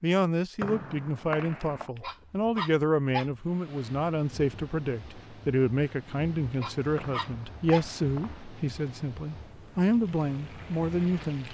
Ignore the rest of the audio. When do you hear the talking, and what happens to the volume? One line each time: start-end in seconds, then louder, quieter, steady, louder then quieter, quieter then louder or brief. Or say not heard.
0.0-11.4 steady.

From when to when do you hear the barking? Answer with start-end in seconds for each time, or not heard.
1.9-3.4, 6.5-8.0.